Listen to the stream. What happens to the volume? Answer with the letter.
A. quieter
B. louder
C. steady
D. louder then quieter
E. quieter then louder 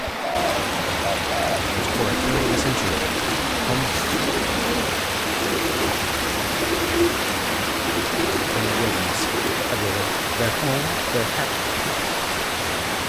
C.